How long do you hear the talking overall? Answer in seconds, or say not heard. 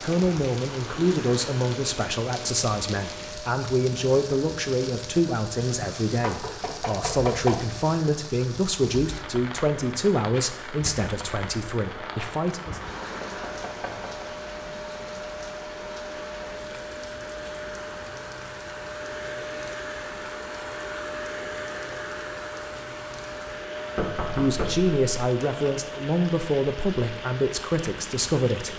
17 s.